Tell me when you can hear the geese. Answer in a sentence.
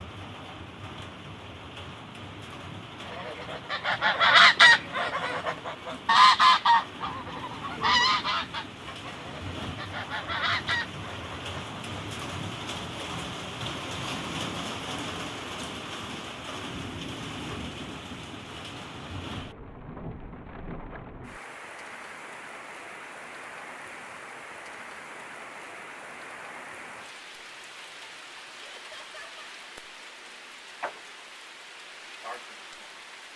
The geese can be heard from 3.0 to 11.8 s.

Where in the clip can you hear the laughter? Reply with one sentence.
The laughter can be heard from 28.6 to 29.4 s.